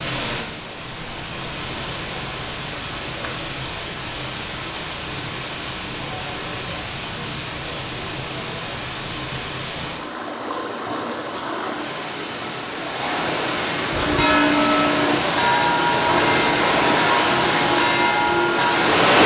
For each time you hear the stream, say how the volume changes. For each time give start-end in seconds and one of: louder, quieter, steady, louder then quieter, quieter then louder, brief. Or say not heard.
0.0-19.2 louder.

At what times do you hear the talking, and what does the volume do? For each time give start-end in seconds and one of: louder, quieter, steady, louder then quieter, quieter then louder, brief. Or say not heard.
not heard.